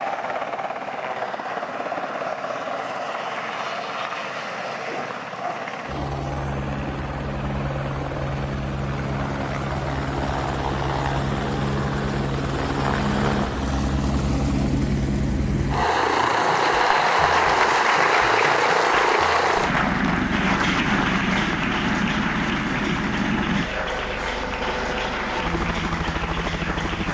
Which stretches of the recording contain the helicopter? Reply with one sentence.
You can hear the helicopter from 0.0 to 27.0 s.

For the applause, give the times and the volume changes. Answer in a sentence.
You can hear the applause from 15.8 to 27.0 s, getting quieter.